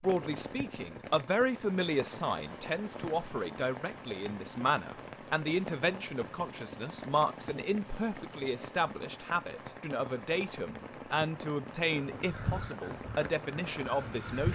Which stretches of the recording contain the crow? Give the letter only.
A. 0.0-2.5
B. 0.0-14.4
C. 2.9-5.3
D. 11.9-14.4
D.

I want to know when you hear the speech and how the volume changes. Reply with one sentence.
You can hear the speech from 0.0 to 14.4 s, at a steady volume.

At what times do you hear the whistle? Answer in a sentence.
You can't hear the whistle here.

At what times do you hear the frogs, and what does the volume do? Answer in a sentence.
The frogs can't be heard in this clip.